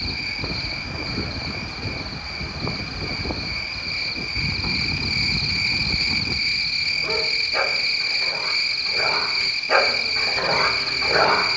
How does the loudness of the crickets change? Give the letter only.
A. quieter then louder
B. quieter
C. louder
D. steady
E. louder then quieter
C.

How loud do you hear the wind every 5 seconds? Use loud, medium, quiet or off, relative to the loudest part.
loud, loud, off.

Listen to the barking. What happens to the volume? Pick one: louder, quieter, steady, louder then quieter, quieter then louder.
quieter then louder.